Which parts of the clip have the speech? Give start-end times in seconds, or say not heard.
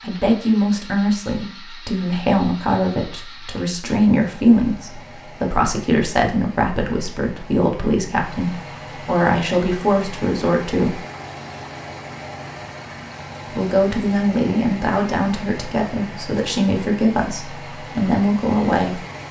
0.0-11.0, 13.5-19.0.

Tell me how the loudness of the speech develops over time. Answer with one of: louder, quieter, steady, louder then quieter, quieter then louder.
steady.